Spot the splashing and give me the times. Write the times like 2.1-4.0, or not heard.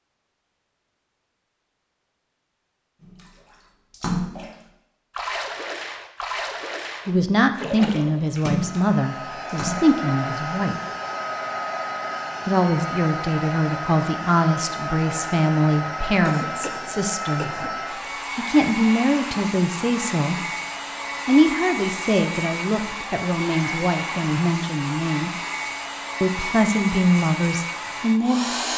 3.0-10.0.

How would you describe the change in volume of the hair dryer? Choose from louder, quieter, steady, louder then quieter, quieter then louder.
steady.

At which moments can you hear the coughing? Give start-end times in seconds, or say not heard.
16.2-17.8.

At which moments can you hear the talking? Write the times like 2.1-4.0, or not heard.
7.0-10.8, 12.4-17.4, 18.4-20.4, 21.2-25.3, 26.2-28.4.